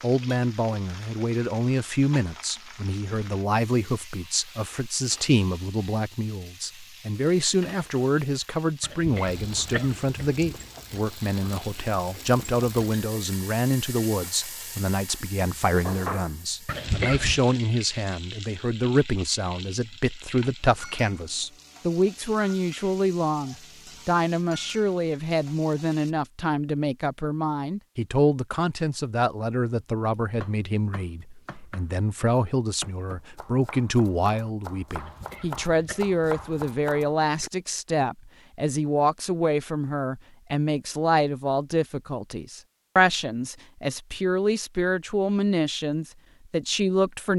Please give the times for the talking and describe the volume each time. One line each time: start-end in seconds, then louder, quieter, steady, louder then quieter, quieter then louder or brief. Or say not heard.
0.0-47.3 steady.